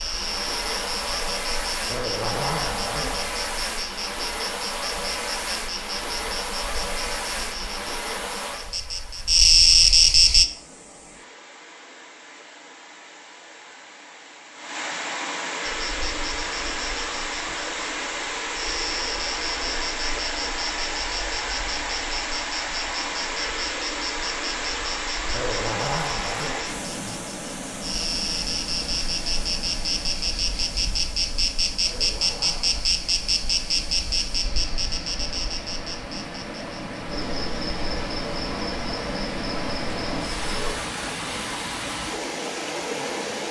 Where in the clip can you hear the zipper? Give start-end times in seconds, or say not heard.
1.9-3.3, 25.3-26.6, 31.8-32.9.